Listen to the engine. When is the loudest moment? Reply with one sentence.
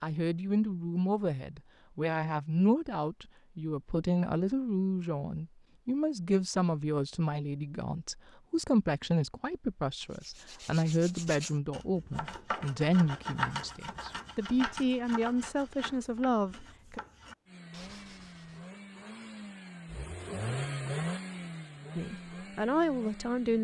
The volume of the engine peaks at 21 seconds.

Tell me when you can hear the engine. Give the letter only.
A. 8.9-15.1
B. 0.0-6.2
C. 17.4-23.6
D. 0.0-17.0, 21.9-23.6
C.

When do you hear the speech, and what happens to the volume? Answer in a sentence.
You can hear the speech from 0.0 to 17.0 s, at a steady volume; and briefly from 21.9 to 23.6 s.